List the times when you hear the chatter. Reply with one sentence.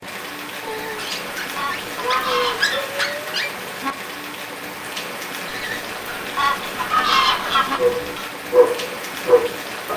You can't hear the chatter here.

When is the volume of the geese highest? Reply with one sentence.
The loudest moment of the geese is at 7 seconds.